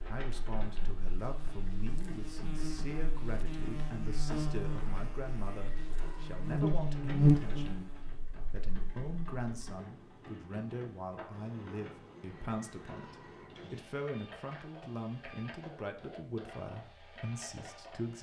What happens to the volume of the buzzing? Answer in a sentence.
The volume of the buzzing goes up.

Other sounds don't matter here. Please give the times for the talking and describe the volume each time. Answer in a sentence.
You can hear the talking from 0.1 to 18.1 s, at a steady volume.